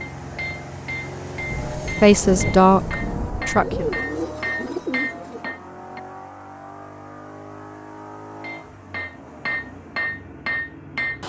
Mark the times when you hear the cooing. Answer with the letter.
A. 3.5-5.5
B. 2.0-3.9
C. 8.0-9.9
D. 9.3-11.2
A.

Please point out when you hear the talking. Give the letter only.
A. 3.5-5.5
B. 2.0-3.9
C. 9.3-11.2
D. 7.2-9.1
B.